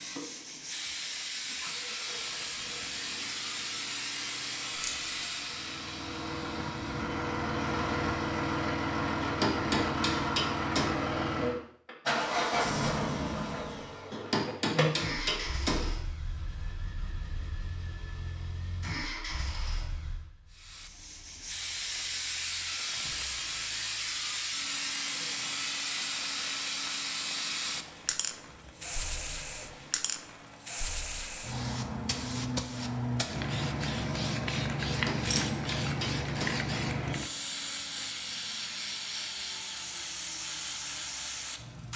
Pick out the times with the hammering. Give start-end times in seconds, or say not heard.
9.2-11.1, 14.1-15.9, 34.9-36.6.